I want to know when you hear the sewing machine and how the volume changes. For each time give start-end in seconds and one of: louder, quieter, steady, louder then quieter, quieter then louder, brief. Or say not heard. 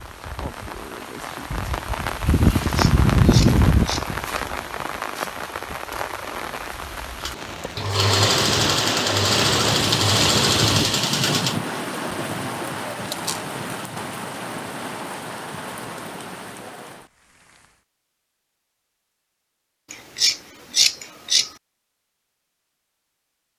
7.2-11.6 steady.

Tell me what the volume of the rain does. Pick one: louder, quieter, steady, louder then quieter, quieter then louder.
quieter.